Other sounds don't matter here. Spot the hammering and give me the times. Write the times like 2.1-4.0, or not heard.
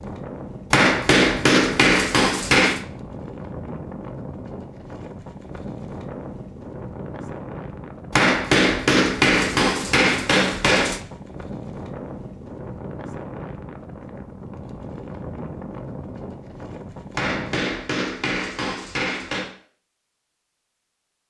0.7-2.8, 8.1-11.0, 17.1-19.5.